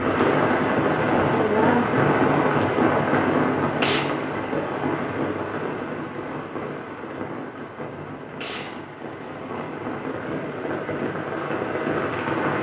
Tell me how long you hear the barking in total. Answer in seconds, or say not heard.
not heard.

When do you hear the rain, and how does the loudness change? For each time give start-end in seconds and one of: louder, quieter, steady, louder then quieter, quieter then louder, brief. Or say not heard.
0.0-12.5 quieter then louder.